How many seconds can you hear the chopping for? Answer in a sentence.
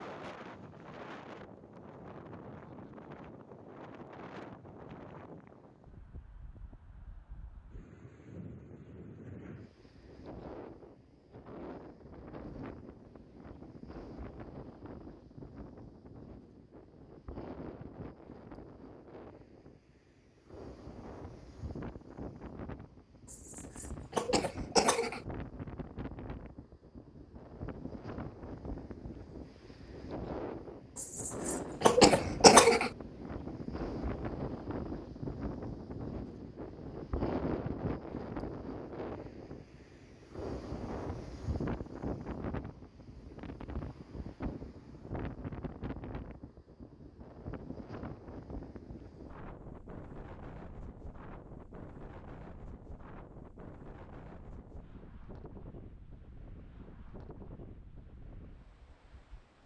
You can't hear the chopping here.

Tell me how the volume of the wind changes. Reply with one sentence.
The loudness of the wind goes up, then down.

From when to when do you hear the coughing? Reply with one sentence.
The coughing can be heard from 23.3 to 25.2 s and from 30.9 to 32.9 s.